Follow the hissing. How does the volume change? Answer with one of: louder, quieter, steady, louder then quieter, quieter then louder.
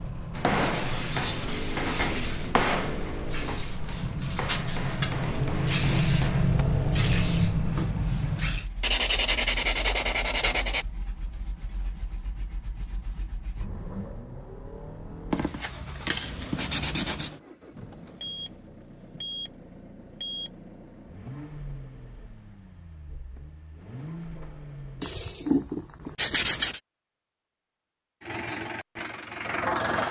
louder.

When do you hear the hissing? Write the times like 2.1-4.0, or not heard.
0.0-8.7.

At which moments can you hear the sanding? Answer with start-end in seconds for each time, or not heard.
0.7-2.5, 8.8-10.8, 15.3-17.3, 25.0-26.8.